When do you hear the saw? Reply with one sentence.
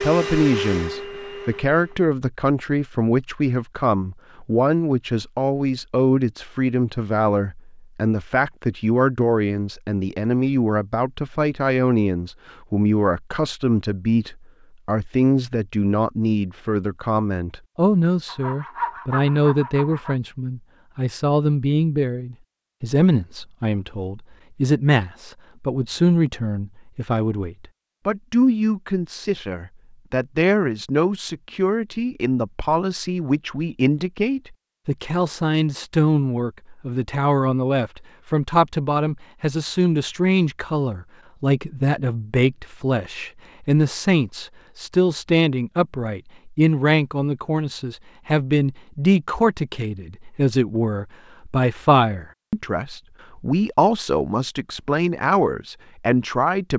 The saw can be heard from 18.2 to 20.1 s.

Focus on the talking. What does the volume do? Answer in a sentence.
The loudness of the talking stays about the same.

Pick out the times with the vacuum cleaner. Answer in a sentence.
You can hear the vacuum cleaner from 0.0 to 2.0 s.